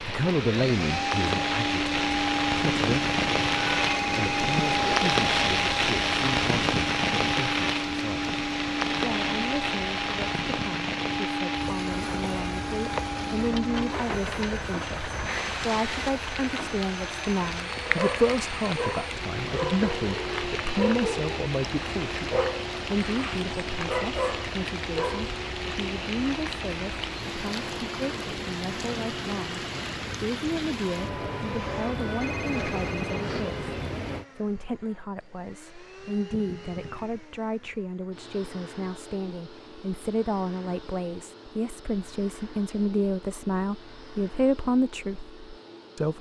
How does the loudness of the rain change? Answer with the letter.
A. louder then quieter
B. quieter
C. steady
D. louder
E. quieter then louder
B.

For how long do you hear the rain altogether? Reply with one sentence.
You can hear the rain for 34 seconds altogether.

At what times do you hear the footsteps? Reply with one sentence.
The footsteps can't be heard in this clip.